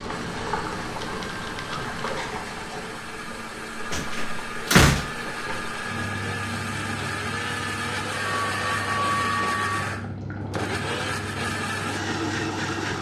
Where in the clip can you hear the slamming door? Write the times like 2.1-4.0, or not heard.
3.9-5.3.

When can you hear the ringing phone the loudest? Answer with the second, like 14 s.
9 s.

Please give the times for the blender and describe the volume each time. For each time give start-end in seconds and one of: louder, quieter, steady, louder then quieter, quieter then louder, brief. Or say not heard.
0.0-12.9 louder.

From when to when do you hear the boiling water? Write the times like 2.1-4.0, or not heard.
0.0-12.9.